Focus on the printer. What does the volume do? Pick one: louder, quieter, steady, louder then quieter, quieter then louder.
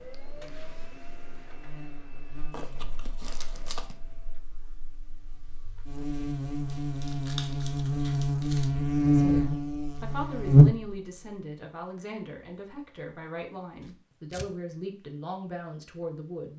quieter.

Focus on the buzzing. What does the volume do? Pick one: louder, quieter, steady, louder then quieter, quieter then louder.
quieter then louder.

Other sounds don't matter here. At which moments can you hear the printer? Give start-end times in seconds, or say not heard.
0.0-4.4.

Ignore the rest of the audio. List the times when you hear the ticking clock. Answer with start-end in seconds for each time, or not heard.
not heard.